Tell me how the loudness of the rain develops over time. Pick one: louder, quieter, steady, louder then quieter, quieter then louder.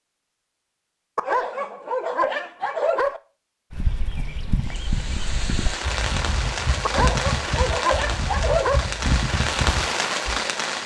louder.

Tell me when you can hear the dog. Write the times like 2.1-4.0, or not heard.
1.1-3.2, 6.8-8.8.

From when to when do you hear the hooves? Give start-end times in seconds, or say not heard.
3.7-10.3.